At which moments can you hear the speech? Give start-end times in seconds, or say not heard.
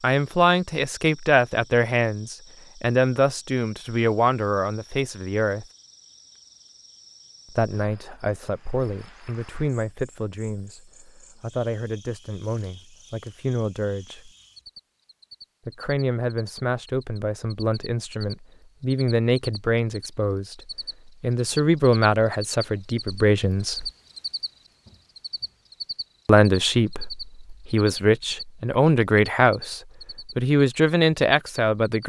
0.0-5.7, 7.5-14.3, 15.7-23.9, 26.2-32.0.